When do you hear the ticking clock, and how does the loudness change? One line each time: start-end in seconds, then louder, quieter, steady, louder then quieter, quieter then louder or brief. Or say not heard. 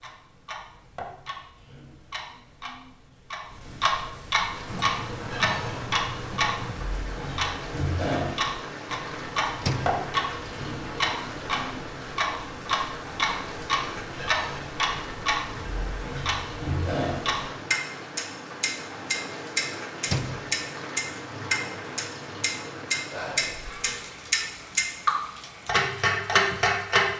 0.0-27.1 louder.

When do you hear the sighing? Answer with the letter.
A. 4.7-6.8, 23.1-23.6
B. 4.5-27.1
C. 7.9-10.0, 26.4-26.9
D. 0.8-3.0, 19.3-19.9
A.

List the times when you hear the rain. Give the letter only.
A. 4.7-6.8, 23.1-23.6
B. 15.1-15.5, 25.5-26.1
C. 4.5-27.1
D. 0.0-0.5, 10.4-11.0
C.